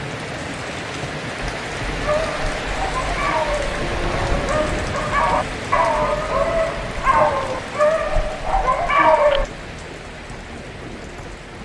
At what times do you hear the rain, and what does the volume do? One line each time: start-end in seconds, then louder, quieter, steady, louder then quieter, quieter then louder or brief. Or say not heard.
0.0-11.6 quieter.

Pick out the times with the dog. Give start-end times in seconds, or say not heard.
1.9-9.4.